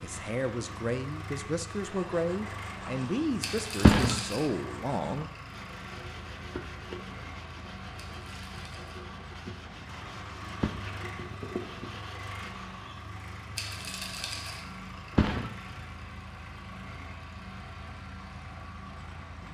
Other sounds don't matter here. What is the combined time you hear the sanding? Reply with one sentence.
The sanding can be heard for 11 seconds in total.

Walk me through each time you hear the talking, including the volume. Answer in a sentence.
You can hear the talking from 0.0 to 5.3 s, at a steady volume.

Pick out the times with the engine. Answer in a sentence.
The engine can be heard from 0.0 to 19.4 s.